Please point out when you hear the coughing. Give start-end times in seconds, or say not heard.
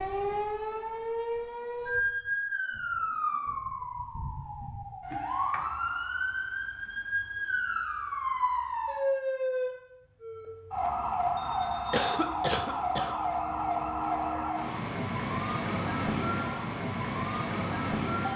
11.9-13.2.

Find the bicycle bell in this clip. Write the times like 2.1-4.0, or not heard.
11.3-12.1.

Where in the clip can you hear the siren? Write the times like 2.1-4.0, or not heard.
0.0-18.3.